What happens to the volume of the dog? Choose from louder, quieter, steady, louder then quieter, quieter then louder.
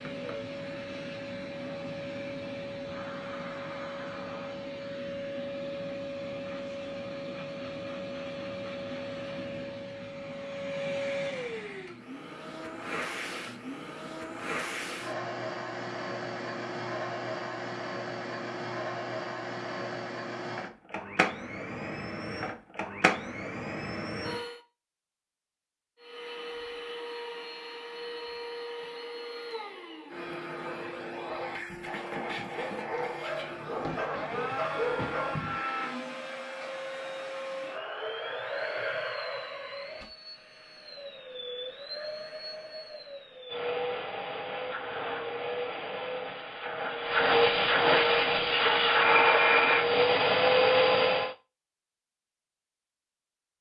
louder.